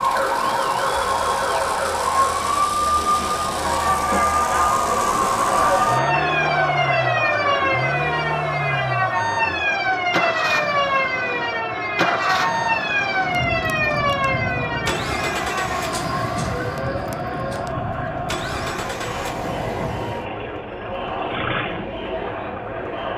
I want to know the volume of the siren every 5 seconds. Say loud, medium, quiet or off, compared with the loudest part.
loud, loud, loud, medium, quiet.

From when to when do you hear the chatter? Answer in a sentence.
The chatter can be heard from 0.0 to 23.1 s.